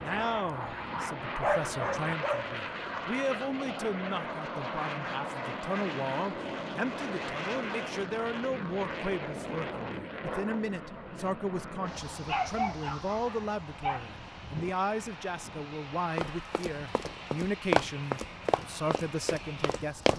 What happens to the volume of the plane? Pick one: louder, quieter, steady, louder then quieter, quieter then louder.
quieter.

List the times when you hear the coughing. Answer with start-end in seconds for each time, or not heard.
not heard.